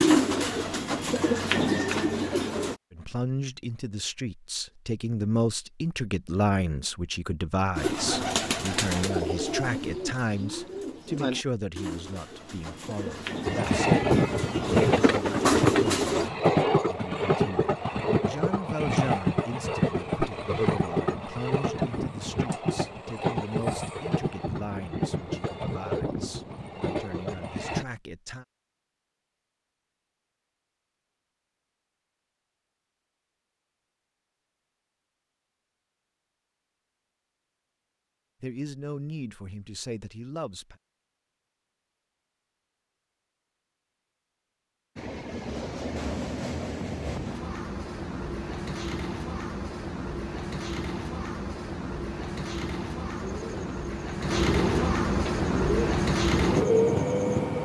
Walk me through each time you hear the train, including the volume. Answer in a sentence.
You can hear the train from 13.4 to 27.9 s, getting quieter; and from 45.0 to 57.5 s, getting louder.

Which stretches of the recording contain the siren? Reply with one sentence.
You can't hear the siren here.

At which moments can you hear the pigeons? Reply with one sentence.
The pigeons can be heard from 0.0 to 2.8 s, from 7.8 to 16.3 s and from 53.1 to 57.4 s.